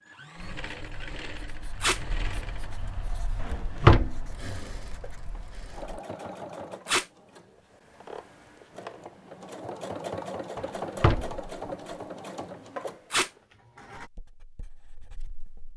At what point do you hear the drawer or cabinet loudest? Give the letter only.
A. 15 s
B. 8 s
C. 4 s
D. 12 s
C.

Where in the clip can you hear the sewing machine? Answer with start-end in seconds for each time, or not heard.
0.0-14.1.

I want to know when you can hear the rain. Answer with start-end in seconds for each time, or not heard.
not heard.